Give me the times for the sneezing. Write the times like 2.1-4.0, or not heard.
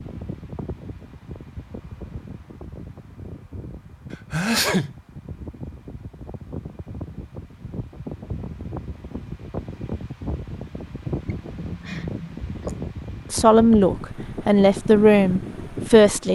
4.1-5.0, 11.2-12.8.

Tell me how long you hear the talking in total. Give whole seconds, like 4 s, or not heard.
3 s.